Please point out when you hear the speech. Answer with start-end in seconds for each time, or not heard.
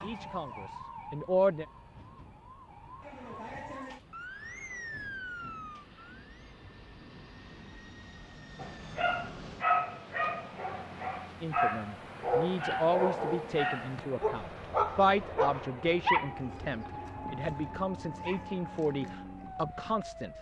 0.0-1.6, 11.4-20.3.